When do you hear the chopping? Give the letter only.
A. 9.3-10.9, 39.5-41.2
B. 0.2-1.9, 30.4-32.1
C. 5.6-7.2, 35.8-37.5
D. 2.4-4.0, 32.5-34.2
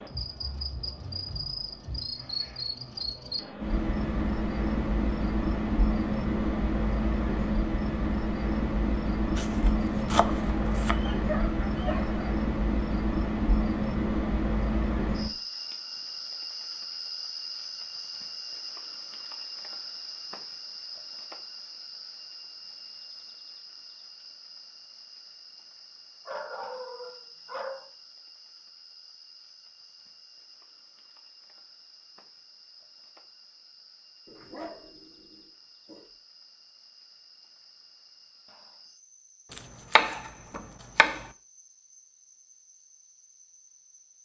A.